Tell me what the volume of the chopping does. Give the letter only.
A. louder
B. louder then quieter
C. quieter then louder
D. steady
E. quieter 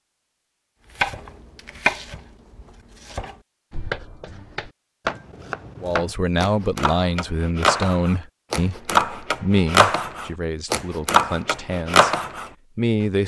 A.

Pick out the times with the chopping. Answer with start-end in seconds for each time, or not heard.
0.9-12.5.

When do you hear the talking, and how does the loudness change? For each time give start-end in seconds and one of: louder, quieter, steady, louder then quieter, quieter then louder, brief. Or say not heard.
5.8-12.2 quieter
12.8-13.2 brief.